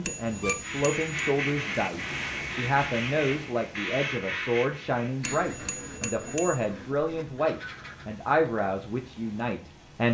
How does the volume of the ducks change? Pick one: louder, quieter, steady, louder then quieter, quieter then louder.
quieter.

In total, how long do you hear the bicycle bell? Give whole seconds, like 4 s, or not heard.
3 s.